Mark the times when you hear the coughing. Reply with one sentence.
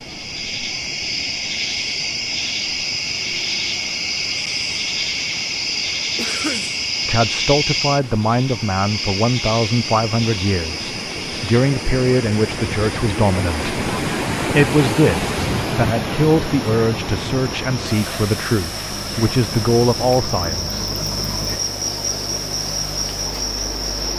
You can hear the coughing from 6.2 to 6.8 s.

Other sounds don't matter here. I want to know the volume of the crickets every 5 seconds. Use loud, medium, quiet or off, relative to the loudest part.
loud, loud, medium, medium, loud.